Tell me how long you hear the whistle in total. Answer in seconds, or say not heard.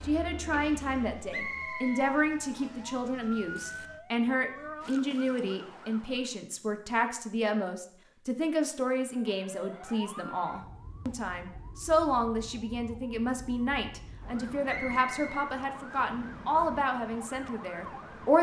3 s.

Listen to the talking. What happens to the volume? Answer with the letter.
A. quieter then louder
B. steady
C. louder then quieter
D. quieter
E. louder
B.